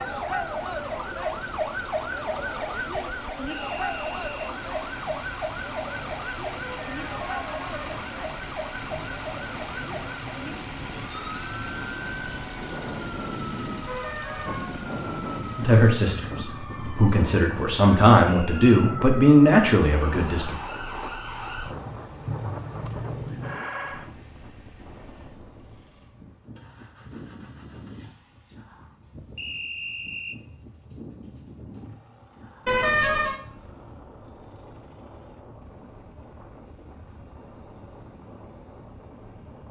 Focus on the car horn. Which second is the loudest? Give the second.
33 s.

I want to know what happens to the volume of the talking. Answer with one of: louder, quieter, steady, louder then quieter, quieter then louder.
louder.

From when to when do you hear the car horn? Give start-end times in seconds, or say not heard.
6.6-7.9, 13.8-14.8, 32.6-33.4.